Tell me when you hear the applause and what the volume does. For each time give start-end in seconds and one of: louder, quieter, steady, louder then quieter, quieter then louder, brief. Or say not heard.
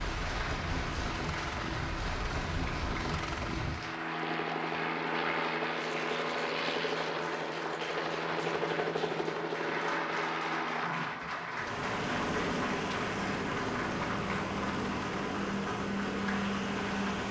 0.0-17.2 steady.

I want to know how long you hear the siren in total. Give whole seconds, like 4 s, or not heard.
not heard.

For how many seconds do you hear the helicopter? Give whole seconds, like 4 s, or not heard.
17 s.